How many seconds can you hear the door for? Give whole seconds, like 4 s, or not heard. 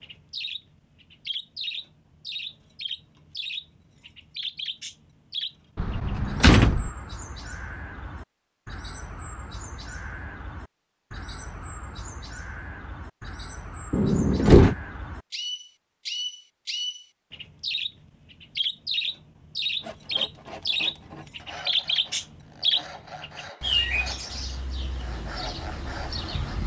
2 s.